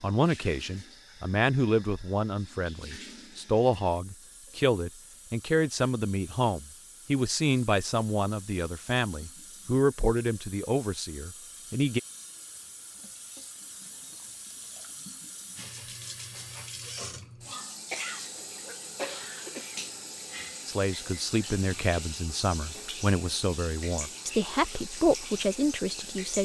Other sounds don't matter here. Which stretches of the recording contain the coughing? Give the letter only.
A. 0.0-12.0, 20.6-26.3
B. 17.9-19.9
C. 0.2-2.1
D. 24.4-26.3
B.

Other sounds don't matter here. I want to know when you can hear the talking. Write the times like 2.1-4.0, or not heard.
0.0-12.0, 20.6-26.3.